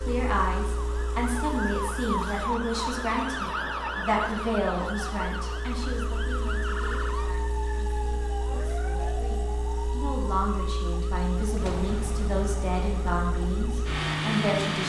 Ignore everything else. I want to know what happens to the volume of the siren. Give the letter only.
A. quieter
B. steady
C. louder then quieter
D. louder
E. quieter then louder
A.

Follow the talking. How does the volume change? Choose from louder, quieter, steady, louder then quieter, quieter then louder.
quieter then louder.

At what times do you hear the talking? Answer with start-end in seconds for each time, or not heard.
0.0-14.8.